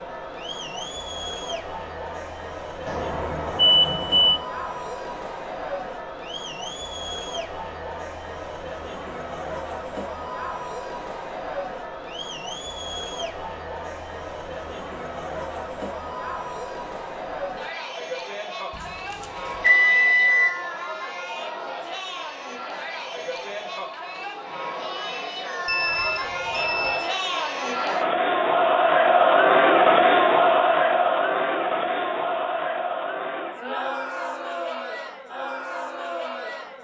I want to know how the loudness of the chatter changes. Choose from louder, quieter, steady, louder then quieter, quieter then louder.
louder.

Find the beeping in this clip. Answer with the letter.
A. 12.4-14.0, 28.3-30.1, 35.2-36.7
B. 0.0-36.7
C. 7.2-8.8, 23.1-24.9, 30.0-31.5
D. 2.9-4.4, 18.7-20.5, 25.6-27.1
D.